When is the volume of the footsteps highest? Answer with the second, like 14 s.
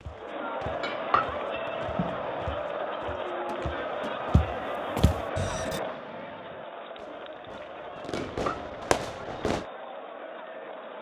5 s.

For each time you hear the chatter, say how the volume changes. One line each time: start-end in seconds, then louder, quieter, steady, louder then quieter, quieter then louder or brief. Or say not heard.
0.0-10.9 quieter.